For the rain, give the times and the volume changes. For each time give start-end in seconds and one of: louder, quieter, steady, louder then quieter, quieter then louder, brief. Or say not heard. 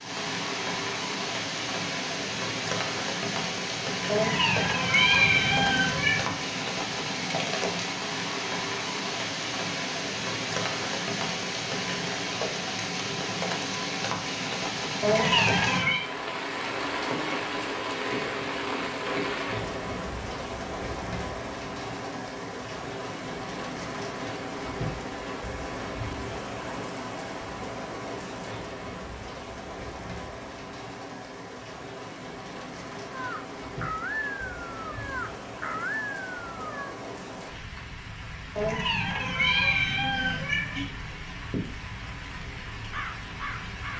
0.0-43.9 quieter.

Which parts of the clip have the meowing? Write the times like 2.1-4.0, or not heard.
4.0-6.3, 15.0-16.1, 38.5-40.9.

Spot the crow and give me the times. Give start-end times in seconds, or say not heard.
33.1-37.0, 42.9-43.9.